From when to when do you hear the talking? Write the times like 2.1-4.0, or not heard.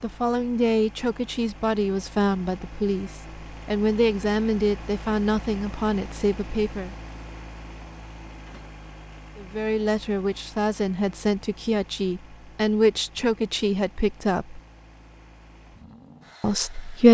0.0-7.0, 9.3-14.6, 16.4-17.1.